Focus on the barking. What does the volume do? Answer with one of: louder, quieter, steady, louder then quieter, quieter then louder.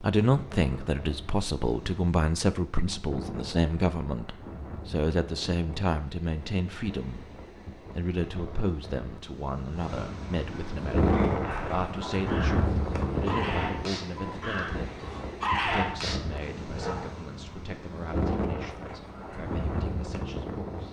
louder.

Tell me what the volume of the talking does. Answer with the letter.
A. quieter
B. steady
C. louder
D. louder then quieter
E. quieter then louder
A.